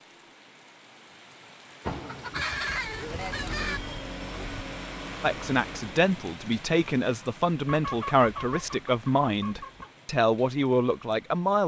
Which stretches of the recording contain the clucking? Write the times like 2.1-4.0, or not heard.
1.9-3.8, 7.7-9.9.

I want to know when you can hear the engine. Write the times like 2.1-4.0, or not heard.
2.5-6.0.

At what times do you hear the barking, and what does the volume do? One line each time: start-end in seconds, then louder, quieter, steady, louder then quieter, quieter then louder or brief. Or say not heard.
not heard.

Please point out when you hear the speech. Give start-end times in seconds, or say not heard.
5.2-11.6.